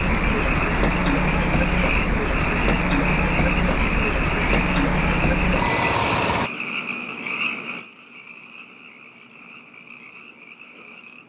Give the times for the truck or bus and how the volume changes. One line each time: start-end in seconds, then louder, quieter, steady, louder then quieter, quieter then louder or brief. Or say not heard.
0.0-6.5 steady.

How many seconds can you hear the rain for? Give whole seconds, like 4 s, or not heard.
not heard.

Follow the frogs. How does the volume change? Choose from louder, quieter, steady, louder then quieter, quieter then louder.
quieter.